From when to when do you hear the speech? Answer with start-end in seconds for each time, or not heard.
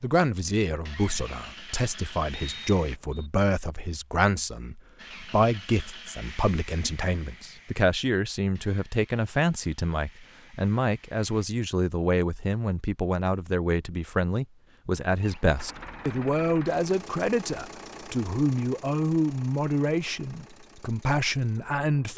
0.0-22.1.